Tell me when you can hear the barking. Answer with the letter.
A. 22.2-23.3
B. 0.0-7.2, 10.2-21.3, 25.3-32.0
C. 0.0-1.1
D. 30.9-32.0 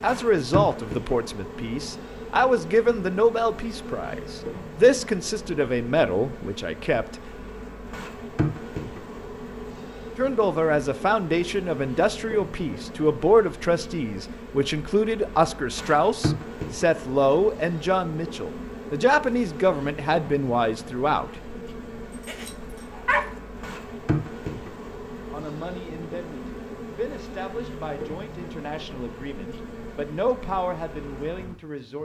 A.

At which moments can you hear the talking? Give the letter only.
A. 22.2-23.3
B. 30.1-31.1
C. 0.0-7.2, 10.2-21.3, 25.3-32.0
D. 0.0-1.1
C.